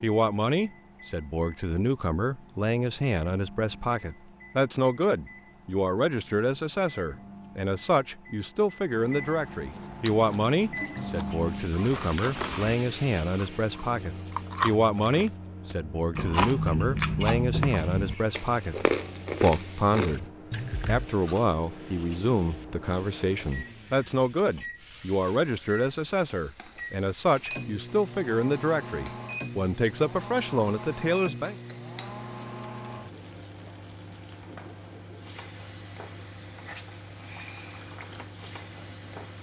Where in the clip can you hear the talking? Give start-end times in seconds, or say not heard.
0.0-18.8, 19.4-31.6.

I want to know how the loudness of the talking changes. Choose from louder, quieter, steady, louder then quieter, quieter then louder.
steady.